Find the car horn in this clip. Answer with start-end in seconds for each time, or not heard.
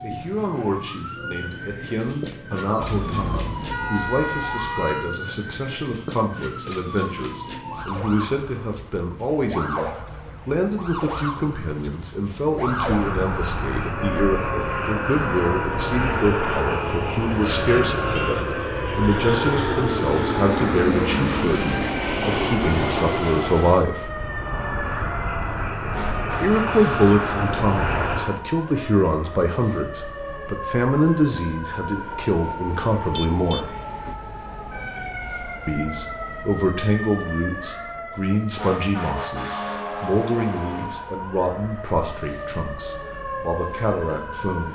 2.8-5.2, 17.6-18.5, 33.0-34.1.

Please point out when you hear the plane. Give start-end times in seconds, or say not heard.
12.7-28.4.